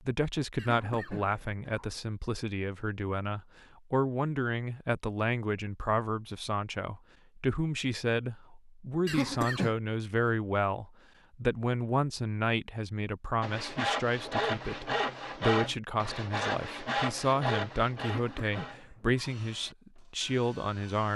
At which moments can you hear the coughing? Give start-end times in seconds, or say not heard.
0.6-1.9, 9.1-9.8, 18.0-19.4.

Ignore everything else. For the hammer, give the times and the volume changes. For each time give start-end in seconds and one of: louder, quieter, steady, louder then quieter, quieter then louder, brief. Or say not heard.
not heard.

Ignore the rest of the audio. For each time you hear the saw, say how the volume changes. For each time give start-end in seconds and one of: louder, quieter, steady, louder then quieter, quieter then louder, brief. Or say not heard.
13.4-21.1 quieter.